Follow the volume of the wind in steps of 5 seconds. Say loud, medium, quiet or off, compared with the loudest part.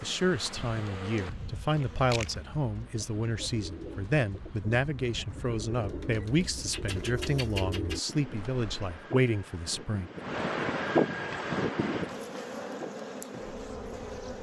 quiet, quiet, loud.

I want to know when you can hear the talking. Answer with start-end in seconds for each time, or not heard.
0.0-10.1.